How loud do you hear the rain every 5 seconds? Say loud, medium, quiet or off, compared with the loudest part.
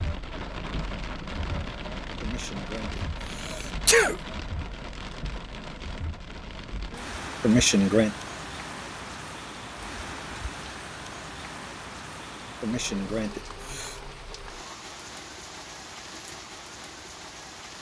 loud, loud, loud, medium.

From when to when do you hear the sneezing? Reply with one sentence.
You can hear the sneezing from 2.2 to 2.9 s, from 3.5 to 4.2 s, from 7.4 to 8.2 s and from 12.6 to 14.0 s.